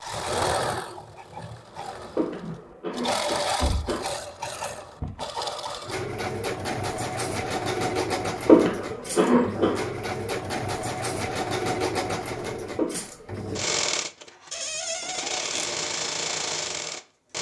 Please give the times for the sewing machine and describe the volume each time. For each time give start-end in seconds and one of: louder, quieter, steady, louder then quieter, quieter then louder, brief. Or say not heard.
0.0-17.3 steady.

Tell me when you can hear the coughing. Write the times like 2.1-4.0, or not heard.
2.1-4.0, 8.4-9.8, 12.8-13.2.